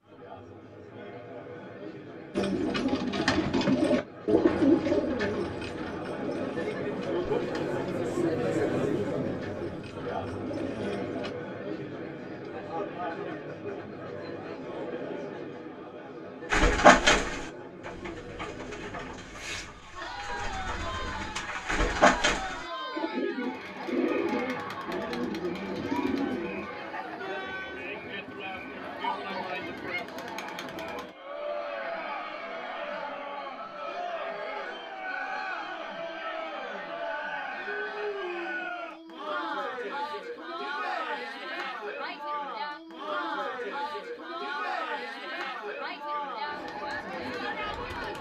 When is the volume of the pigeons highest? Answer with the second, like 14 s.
17 s.